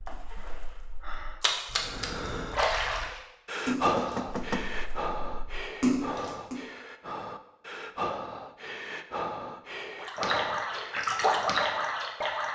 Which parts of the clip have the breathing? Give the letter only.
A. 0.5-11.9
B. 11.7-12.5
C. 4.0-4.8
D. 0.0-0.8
A.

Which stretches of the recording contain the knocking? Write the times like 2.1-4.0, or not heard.
4.0-4.8.